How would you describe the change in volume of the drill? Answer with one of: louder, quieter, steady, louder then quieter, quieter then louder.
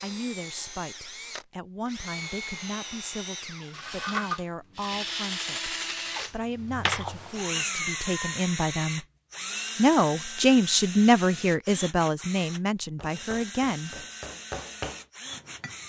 louder then quieter.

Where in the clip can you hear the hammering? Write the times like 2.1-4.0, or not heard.
12.9-15.8.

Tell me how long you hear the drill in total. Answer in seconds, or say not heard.
16 s.